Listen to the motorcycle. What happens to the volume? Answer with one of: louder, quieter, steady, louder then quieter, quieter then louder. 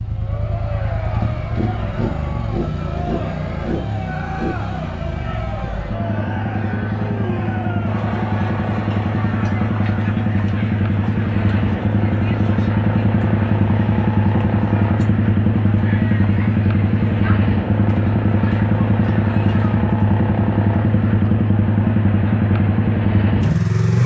louder.